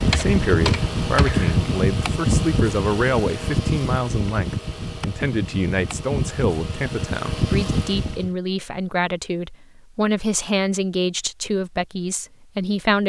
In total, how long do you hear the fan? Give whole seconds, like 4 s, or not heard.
8 s.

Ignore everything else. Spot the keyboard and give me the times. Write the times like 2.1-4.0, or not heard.
0.0-1.6.